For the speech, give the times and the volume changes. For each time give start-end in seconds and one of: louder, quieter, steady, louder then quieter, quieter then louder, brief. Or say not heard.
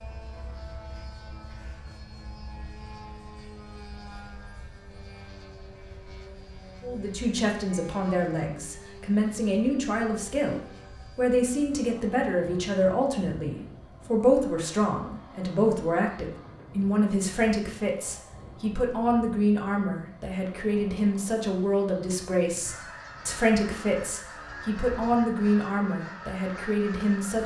6.8-27.4 steady.